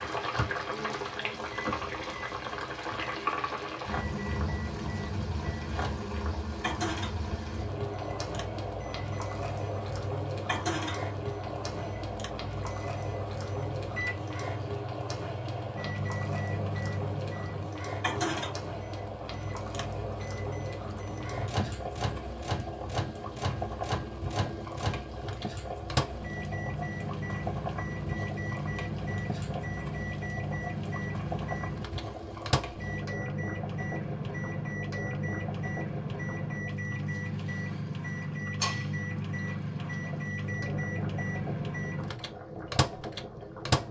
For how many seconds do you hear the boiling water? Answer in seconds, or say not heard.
44 s.